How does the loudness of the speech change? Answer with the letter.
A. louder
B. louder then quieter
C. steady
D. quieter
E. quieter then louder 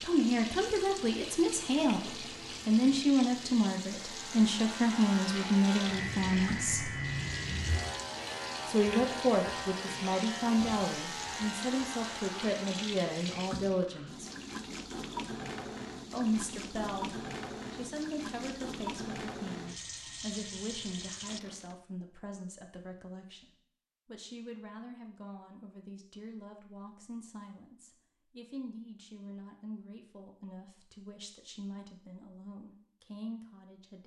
D.